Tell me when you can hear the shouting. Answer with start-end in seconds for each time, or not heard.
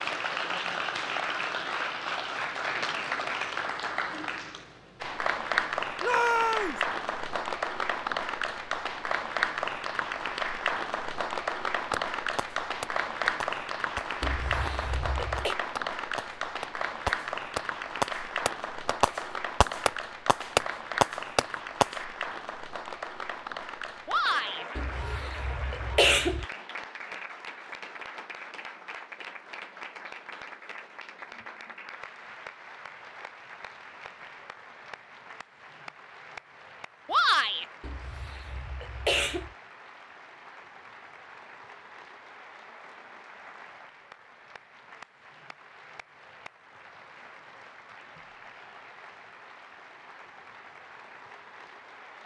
6.0-6.8, 24.1-24.6, 37.0-37.6.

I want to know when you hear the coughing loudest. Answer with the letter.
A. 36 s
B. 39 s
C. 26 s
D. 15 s
C.